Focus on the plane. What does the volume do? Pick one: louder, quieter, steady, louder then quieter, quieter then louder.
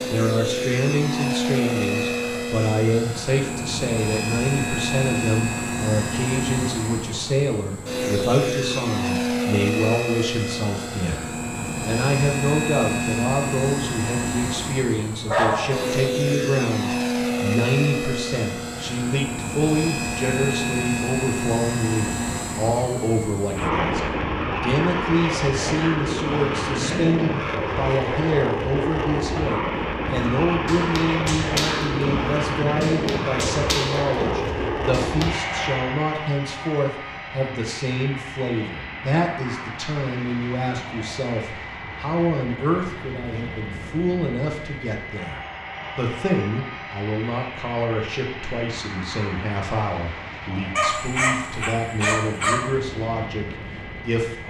quieter.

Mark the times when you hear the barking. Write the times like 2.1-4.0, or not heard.
15.2-15.9, 50.8-52.6.